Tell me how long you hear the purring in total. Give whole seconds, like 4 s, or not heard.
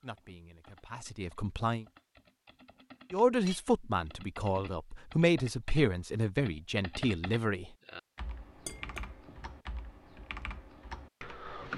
not heard.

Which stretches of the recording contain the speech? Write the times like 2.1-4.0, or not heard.
0.0-1.9, 3.1-7.7.